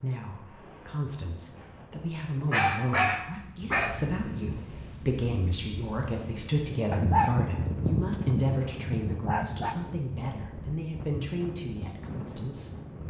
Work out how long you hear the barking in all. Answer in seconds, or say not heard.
5 s.